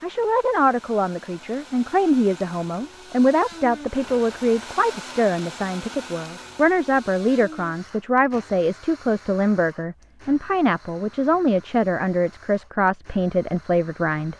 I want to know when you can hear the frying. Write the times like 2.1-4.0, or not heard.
not heard.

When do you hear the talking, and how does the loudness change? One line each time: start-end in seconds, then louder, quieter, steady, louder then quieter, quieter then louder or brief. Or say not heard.
0.0-14.3 steady.